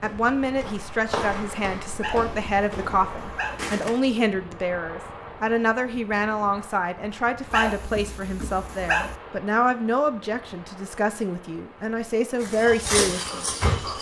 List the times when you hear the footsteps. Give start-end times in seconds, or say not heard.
0.0-4.0, 12.4-13.9.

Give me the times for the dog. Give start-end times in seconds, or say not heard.
2.0-3.6, 7.5-9.2.